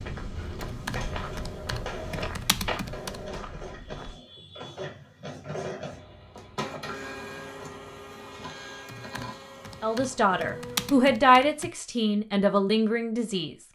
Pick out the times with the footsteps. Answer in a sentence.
The footsteps can be heard from 0.0 to 4.2 s.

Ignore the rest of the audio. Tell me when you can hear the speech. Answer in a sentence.
The speech can be heard from 9.8 to 13.6 s.